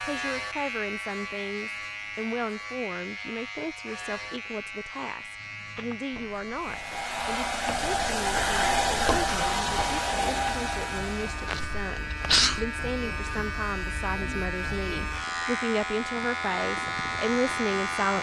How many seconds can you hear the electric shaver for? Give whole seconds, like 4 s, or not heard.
18 s.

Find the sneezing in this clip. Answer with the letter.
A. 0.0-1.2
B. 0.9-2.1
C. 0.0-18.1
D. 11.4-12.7
D.